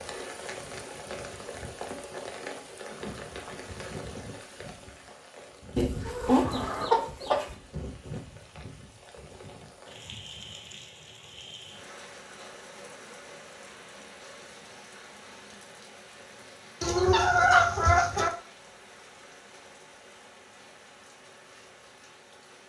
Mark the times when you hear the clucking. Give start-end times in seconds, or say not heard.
5.8-7.5, 16.8-18.3.